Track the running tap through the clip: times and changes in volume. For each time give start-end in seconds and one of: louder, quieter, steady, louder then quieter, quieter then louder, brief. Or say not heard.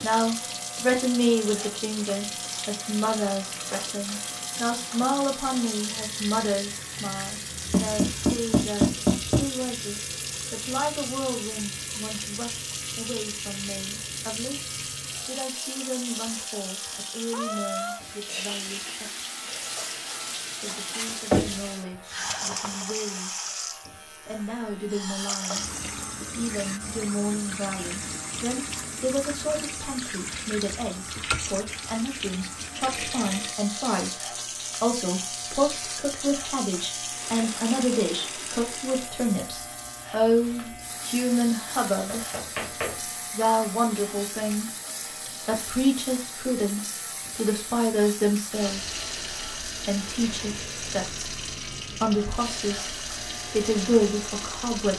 0.0-54.9 steady.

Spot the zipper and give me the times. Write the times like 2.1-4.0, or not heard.
not heard.